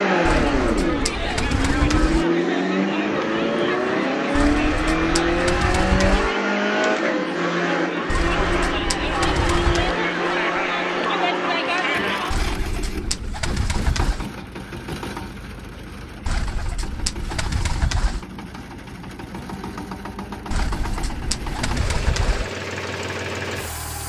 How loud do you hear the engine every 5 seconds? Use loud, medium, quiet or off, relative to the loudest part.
loud, loud, medium, quiet, medium.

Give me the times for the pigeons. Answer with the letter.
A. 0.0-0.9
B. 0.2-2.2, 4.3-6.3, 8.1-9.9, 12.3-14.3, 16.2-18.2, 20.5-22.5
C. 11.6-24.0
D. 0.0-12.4
B.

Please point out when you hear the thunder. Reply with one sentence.
You can hear the thunder from 3.0 to 4.0 s.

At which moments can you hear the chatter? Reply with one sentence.
You can hear the chatter from 0.0 to 12.4 s.